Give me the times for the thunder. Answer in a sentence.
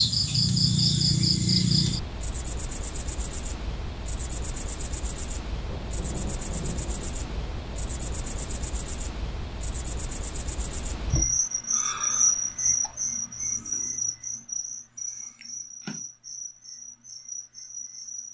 The thunder can be heard from 5.7 to 8.6 s.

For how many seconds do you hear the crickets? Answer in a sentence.
You can hear the crickets for 18 seconds altogether.